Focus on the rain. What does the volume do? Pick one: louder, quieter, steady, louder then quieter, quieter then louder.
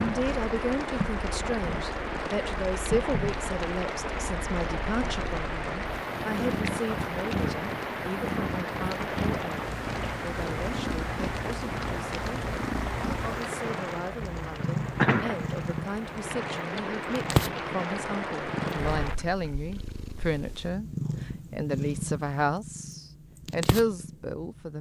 steady.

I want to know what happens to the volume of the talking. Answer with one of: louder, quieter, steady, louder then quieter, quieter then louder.
quieter then louder.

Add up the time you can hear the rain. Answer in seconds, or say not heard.
19 s.